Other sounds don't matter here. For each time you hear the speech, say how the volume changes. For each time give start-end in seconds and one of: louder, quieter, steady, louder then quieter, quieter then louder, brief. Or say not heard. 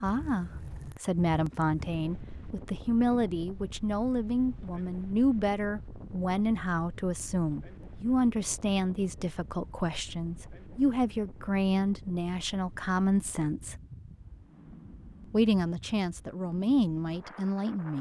0.0-13.8 steady
15.3-17.9 brief.